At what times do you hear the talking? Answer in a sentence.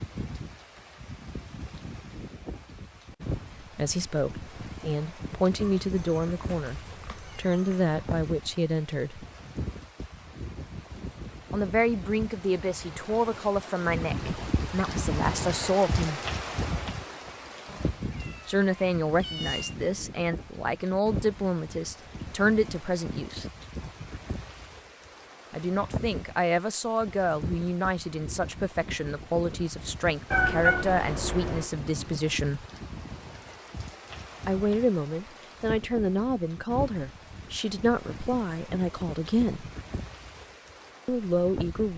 You can hear the talking from 3.8 to 9.2 s, from 11.5 to 16.2 s, from 18.4 to 23.4 s, from 25.5 to 32.6 s, from 34.5 to 39.6 s and from 41.0 to 41.9 s.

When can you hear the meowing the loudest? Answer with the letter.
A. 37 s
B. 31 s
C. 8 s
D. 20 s
B.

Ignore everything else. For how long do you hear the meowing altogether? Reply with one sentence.
The meowing can be heard for 6 seconds in total.